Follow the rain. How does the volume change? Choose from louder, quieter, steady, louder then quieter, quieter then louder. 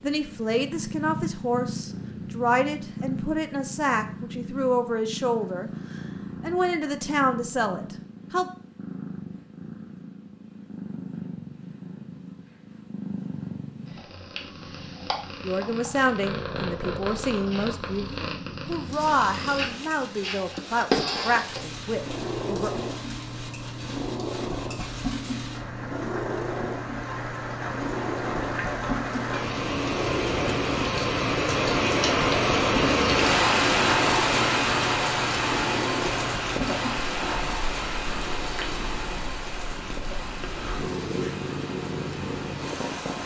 louder then quieter.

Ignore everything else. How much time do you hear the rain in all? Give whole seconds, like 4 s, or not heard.
24 s.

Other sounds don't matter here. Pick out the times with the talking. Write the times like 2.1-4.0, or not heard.
0.0-8.5, 15.4-22.7.